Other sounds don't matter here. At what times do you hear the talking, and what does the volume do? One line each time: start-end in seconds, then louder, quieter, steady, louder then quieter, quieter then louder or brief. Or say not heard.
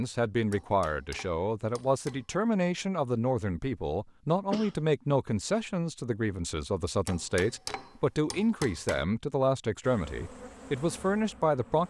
0.0-11.8 steady.